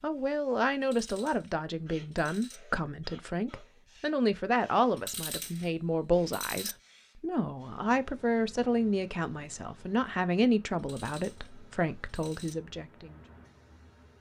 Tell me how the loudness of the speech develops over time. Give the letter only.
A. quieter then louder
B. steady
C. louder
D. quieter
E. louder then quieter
B.